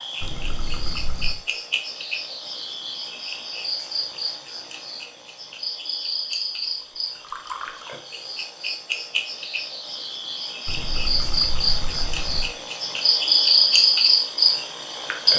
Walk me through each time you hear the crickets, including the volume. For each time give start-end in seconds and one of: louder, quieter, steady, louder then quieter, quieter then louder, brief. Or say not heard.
0.0-15.3 louder.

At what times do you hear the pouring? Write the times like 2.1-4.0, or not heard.
0.2-1.4, 7.2-8.0, 10.7-12.5.